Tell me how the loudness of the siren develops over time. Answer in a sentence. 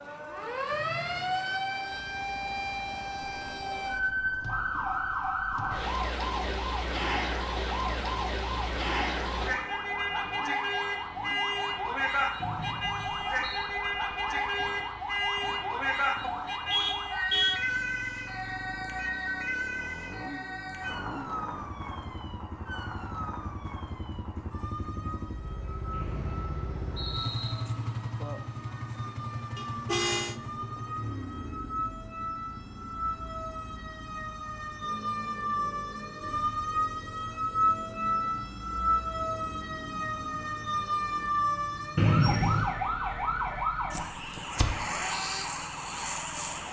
The volume of the siren goes down, then up.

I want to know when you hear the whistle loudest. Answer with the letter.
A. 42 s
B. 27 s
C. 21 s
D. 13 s
A.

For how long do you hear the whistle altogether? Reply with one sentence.
The whistle can be heard for 4 seconds in total.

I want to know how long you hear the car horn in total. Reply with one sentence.
You can hear the car horn for 2 seconds altogether.